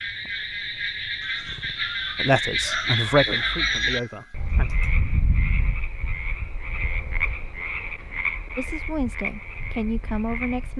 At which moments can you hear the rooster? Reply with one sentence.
The rooster can be heard from 1.2 to 4.8 s.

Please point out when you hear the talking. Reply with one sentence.
The talking can be heard from 2.2 to 4.7 s and from 8.6 to 10.7 s.